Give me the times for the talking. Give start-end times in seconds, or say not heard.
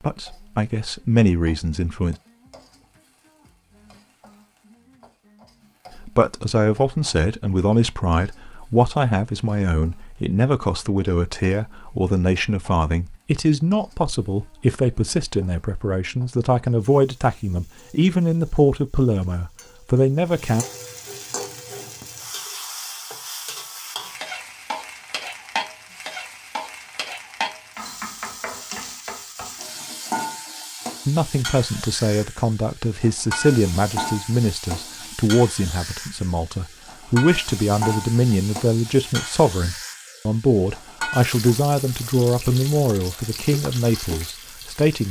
0.0-2.1, 6.0-20.6, 31.1-45.0.